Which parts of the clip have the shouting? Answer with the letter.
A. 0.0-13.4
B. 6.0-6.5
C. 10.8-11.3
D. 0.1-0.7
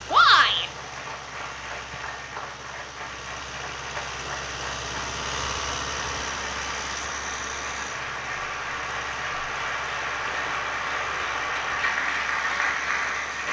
D.